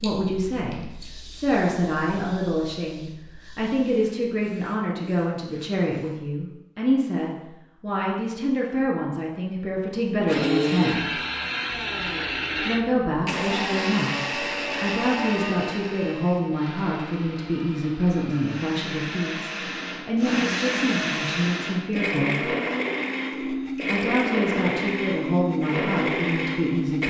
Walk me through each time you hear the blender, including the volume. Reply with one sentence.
You can hear the blender from 10.2 to 27.0 s, getting quieter then louder.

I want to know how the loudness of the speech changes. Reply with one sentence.
The loudness of the speech stays about the same.